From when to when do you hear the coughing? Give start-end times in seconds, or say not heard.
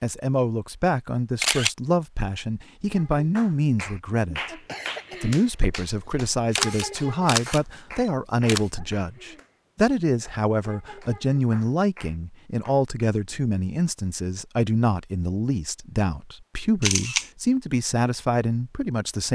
4.7-5.2.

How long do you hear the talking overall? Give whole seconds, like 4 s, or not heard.
19 s.